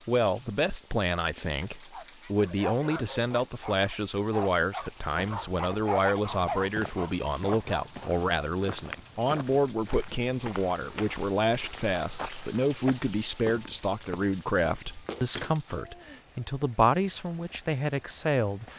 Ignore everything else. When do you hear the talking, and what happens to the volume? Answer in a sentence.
The talking can be heard from 0.1 to 18.7 s, at a steady volume.